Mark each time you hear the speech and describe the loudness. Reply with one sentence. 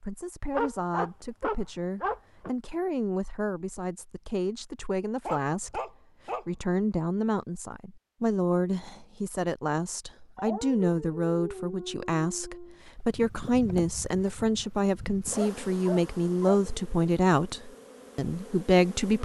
The speech can be heard from 0.0 to 19.2 s, getting louder.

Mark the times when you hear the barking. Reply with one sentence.
You can hear the barking from 0.5 to 2.5 s, from 5.2 to 6.5 s, from 10.3 to 12.8 s and from 15.3 to 16.8 s.